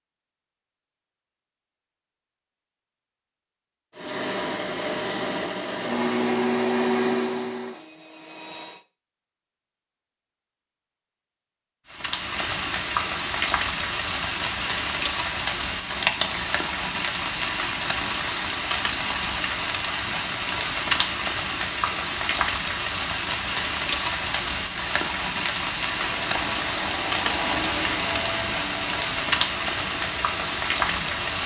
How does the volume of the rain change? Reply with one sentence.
The volume of the rain stays about the same.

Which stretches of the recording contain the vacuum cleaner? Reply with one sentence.
You can hear the vacuum cleaner from 4.0 to 8.8 s and from 25.8 to 31.4 s.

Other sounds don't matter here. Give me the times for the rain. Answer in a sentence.
You can hear the rain from 11.9 to 31.4 s.